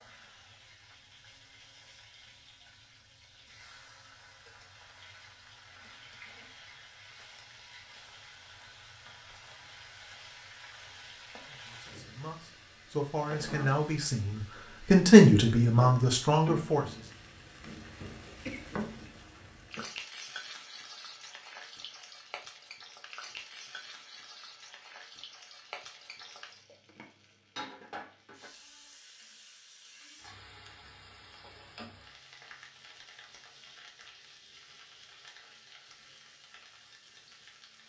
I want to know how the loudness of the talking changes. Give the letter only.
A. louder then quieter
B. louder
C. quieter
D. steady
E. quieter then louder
A.